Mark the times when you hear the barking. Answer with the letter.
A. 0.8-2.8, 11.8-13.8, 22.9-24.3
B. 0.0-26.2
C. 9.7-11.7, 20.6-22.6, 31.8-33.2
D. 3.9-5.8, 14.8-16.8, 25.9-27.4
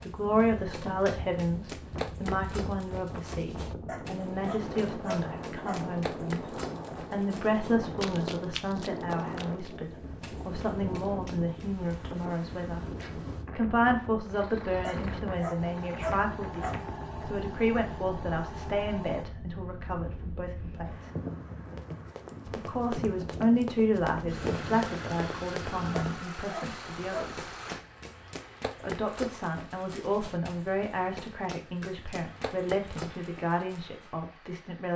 D.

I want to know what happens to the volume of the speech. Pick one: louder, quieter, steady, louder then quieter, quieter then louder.
steady.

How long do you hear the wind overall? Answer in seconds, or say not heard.
26 s.